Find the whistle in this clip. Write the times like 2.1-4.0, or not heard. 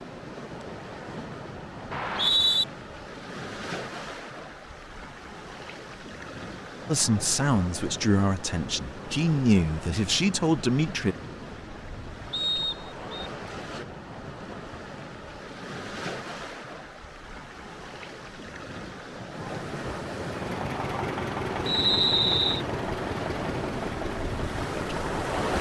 1.9-2.6, 12.3-13.1, 21.6-22.6.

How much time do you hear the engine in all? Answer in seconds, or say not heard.
5 s.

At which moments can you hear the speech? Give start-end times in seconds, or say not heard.
6.8-11.2.